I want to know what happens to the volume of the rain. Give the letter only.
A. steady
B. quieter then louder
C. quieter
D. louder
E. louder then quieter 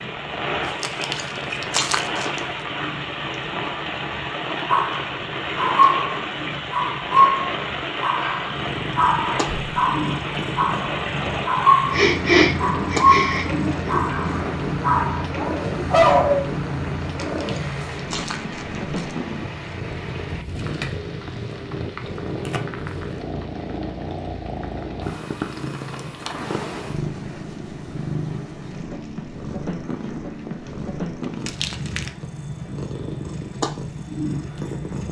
C.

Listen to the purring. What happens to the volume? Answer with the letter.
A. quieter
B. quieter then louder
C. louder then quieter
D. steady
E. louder
E.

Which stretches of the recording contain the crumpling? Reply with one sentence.
You can hear the crumpling from 0.6 to 2.5 s, from 17.0 to 19.1 s and from 31.2 to 32.1 s.